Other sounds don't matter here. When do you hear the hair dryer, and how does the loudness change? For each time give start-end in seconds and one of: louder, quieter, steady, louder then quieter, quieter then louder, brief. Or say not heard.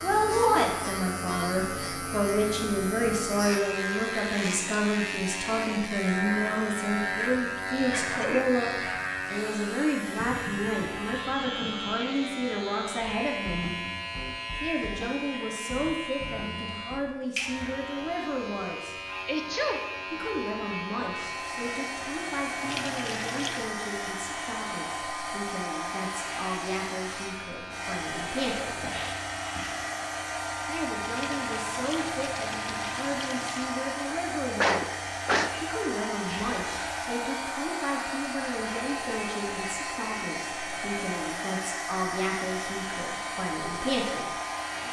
21.2-44.8 steady.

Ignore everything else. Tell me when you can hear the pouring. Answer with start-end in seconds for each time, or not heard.
10.2-12.2, 22.6-23.8, 31.1-33.8.